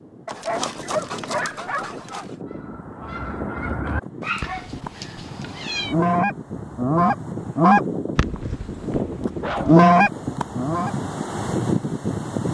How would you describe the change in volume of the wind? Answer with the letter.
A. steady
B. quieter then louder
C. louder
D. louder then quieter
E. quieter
C.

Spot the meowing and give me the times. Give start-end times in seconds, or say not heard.
5.0-6.0.